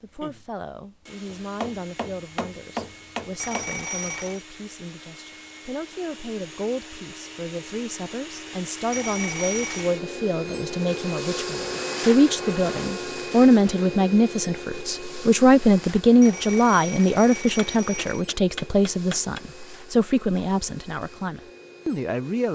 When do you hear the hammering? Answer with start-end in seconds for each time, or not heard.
1.2-3.7, 17.6-19.4.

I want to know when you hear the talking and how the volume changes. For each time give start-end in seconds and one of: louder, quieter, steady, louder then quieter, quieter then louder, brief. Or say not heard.
0.0-22.5 louder then quieter.